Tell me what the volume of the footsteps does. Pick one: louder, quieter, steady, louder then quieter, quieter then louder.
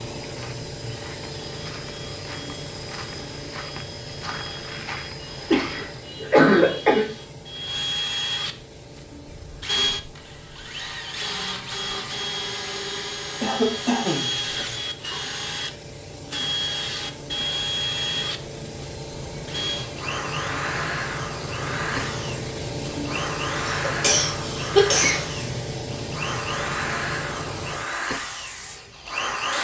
louder.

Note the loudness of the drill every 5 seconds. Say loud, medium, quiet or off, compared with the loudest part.
quiet, loud, loud, loud, loud, loud.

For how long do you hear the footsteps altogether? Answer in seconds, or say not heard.
6 s.